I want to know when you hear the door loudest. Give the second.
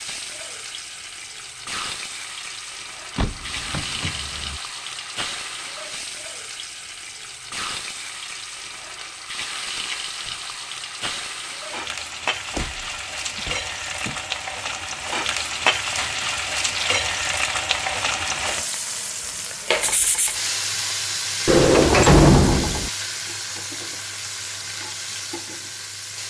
22 s.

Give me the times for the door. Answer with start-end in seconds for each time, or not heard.
3.1-4.6, 12.5-14.2, 21.4-22.9.